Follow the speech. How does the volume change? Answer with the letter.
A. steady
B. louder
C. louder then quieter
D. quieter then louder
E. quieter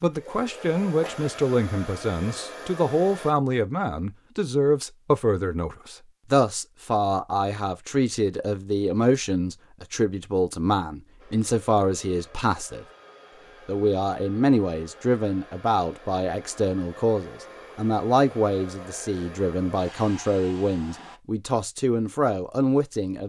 A.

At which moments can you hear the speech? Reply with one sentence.
You can hear the speech from 0.0 to 12.8 s and from 13.7 to 23.2 s.